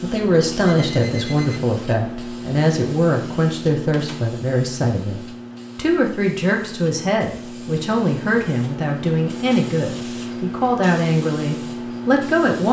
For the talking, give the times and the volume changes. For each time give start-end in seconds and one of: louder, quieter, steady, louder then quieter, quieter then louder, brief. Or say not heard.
0.0-12.6 steady.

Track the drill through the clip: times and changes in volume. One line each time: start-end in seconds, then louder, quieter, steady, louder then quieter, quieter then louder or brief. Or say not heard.
not heard.